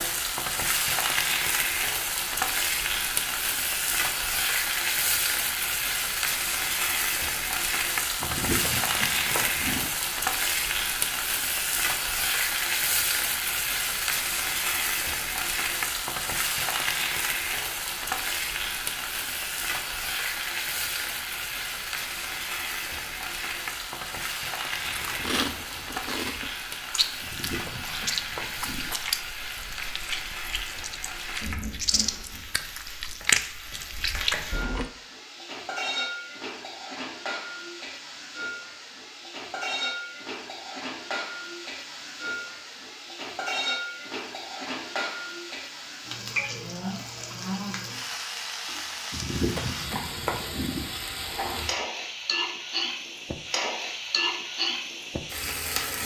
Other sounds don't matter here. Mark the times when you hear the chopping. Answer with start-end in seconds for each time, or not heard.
8.2-9.9, 27.2-28.9, 49.1-51.0.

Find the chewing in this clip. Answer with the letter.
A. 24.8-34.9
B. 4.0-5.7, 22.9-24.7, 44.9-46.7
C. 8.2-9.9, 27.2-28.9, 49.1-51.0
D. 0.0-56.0
A.